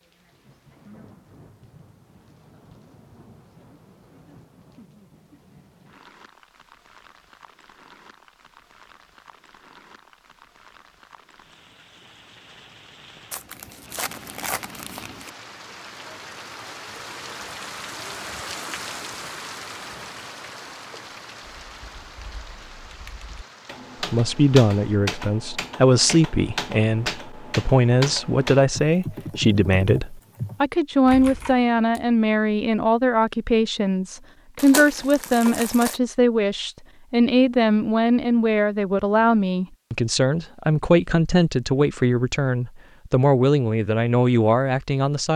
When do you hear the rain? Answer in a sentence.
The rain can be heard from 0.0 to 25.0 s.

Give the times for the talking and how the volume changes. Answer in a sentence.
The talking can be heard from 24.0 to 45.3 s, at a steady volume.